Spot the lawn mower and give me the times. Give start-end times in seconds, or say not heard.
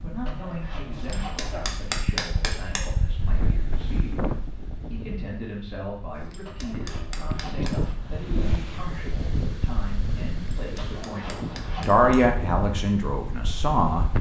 not heard.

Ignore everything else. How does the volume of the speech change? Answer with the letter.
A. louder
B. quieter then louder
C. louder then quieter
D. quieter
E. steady
A.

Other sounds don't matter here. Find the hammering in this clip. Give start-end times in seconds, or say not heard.
0.9-2.9, 6.1-7.9, 10.6-12.3.